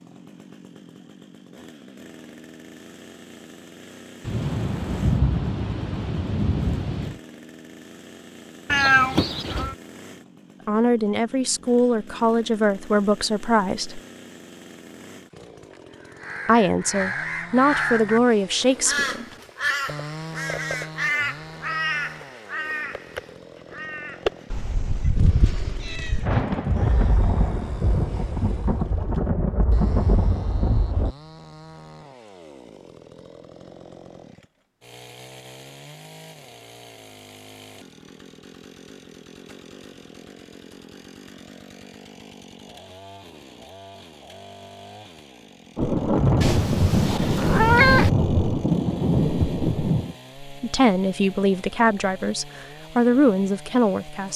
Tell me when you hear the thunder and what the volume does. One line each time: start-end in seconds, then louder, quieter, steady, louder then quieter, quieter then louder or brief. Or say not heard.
4.2-7.2 brief
26.2-31.1 steady
45.8-50.1 steady.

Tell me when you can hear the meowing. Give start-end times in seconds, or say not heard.
8.7-9.8, 24.5-26.2, 46.4-48.1.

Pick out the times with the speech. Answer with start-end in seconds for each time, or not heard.
10.7-14.0, 16.4-19.2, 50.5-54.3.